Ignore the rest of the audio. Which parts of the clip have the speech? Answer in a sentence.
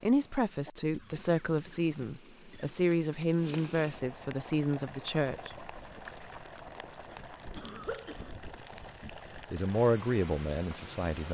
You can hear the speech from 0.0 to 6.0 s and from 9.0 to 11.2 s.